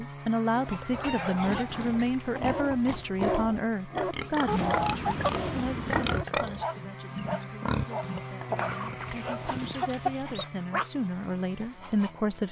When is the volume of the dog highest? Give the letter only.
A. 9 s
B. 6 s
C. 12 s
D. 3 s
D.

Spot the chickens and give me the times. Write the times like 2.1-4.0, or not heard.
0.5-1.4, 4.5-6.2, 8.5-10.4.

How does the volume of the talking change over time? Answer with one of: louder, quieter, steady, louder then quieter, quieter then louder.
quieter then louder.